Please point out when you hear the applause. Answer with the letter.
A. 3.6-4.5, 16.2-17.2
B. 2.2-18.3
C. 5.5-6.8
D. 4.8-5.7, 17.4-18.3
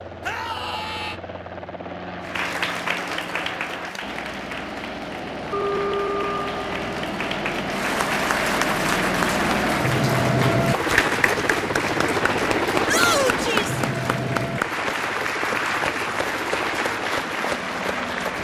B.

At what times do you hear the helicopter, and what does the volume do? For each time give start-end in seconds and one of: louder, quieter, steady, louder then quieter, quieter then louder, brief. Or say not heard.
0.0-18.3 louder then quieter.